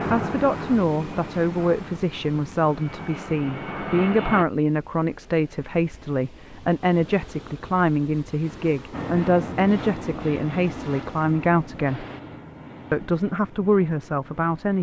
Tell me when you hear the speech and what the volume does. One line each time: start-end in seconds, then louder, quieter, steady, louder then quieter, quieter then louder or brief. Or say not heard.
0.1-12.1 steady
12.9-14.7 brief.